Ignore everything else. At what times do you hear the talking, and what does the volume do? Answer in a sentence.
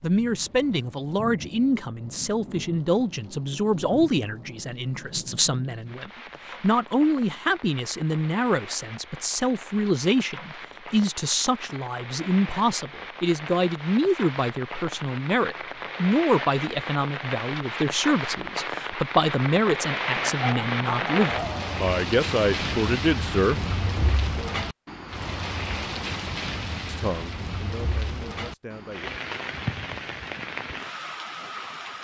The talking can be heard from 0.0 to 23.6 s, at a steady volume; and briefly from 26.9 to 29.1 s.